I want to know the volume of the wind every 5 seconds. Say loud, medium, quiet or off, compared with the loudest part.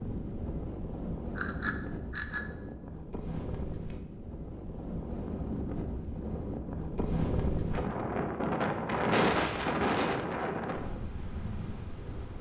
medium, loud, medium.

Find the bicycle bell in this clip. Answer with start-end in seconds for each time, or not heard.
1.4-2.5.